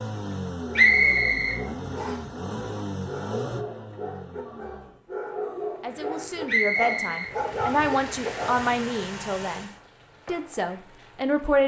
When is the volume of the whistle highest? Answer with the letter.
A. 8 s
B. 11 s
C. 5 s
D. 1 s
D.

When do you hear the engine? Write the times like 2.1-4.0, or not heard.
0.0-5.0, 7.4-9.8.